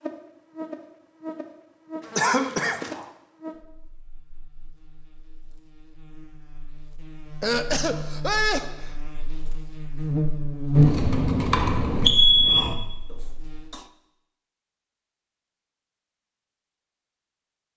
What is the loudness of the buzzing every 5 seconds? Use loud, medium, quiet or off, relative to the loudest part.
quiet, quiet, loud, off.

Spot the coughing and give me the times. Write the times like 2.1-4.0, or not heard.
2.1-3.0, 7.4-8.9, 13.1-13.9.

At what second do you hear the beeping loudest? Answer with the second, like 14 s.
12 s.